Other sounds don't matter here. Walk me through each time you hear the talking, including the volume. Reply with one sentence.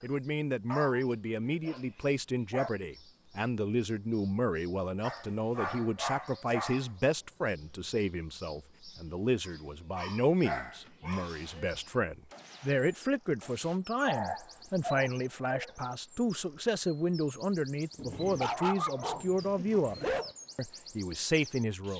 The talking can be heard from 0.0 to 21.9 s, at a steady volume.